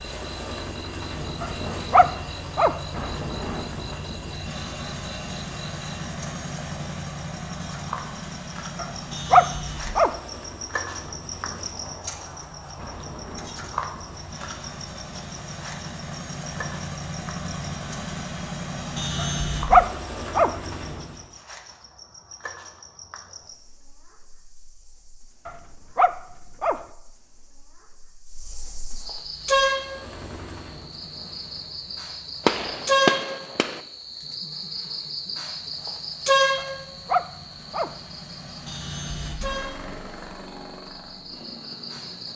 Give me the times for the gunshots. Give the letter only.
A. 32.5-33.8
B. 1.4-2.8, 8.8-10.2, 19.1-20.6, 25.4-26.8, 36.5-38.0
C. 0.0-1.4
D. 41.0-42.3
A.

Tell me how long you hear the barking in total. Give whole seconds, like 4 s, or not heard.
7 s.